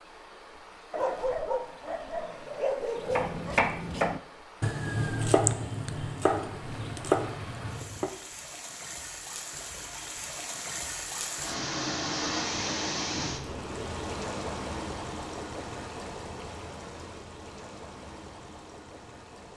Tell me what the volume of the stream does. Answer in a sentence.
The loudness of the stream goes up, then down.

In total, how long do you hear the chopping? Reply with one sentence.
The chopping can be heard for 5 seconds in total.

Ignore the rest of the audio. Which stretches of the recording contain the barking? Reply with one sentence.
You can hear the barking from 0.9 to 3.6 s.